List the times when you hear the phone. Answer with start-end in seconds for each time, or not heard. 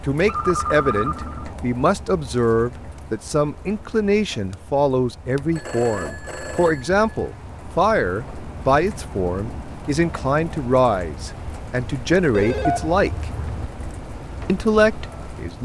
0.2-1.5, 5.5-7.3, 12.3-13.7.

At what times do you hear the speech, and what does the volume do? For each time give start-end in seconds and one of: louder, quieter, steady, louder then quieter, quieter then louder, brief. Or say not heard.
0.1-13.2 steady
14.4-15.6 brief.